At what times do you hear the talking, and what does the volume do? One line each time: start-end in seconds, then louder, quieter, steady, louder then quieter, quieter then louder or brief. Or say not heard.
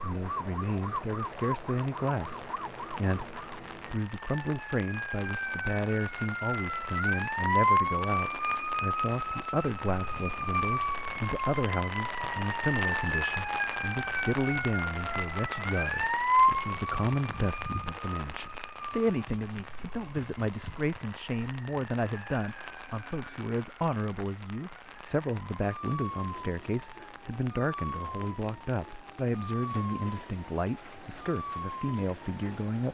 0.0-32.8 steady.